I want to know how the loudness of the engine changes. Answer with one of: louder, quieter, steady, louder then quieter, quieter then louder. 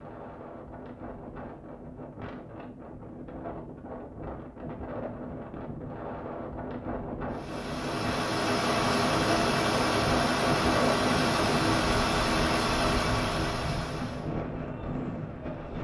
steady.